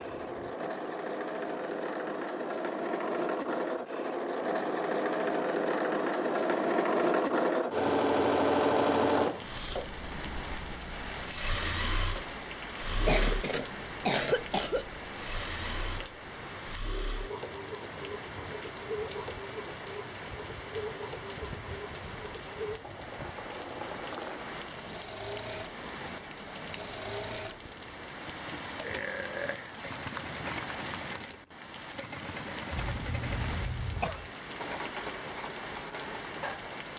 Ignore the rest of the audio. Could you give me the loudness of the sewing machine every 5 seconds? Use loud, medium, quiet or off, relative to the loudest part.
medium, loud, medium, quiet, quiet, quiet, quiet, quiet.